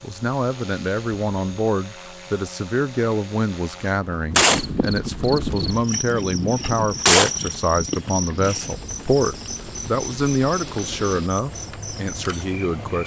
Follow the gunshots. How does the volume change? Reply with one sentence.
The loudness of the gunshots goes up, then down.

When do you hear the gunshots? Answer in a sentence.
You can hear the gunshots from 4.3 to 8.8 s.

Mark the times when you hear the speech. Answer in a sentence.
You can hear the speech from 0.0 to 13.0 s.